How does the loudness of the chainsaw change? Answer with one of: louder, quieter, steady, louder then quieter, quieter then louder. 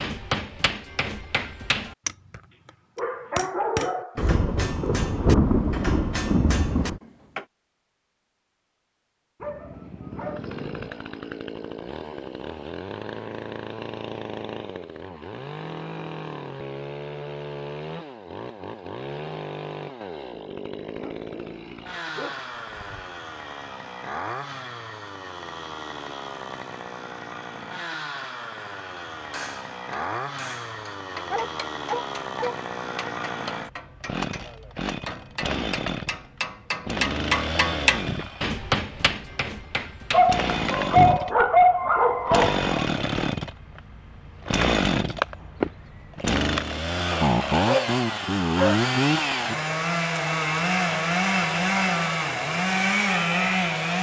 louder.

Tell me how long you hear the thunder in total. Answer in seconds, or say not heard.
3 s.